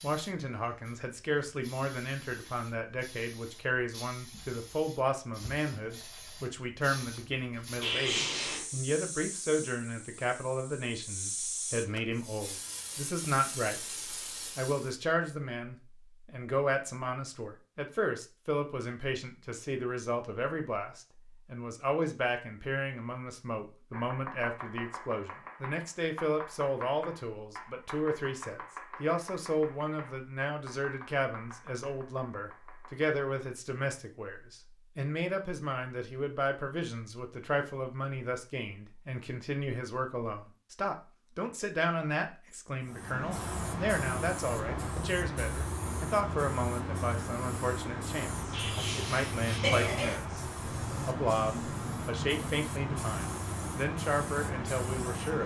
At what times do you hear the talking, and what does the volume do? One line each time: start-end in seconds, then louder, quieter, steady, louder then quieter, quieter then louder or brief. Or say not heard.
0.0-13.8 steady
14.6-55.4 steady.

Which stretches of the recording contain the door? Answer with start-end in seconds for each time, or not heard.
not heard.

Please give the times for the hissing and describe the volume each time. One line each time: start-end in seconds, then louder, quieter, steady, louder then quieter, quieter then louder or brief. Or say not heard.
0.0-14.9 louder
42.8-55.4 steady.